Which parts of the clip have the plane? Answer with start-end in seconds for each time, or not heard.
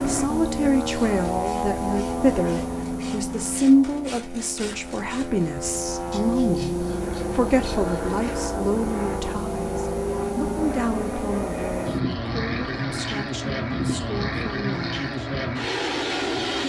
0.0-16.6.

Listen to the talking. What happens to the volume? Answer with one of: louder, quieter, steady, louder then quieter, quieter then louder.
quieter.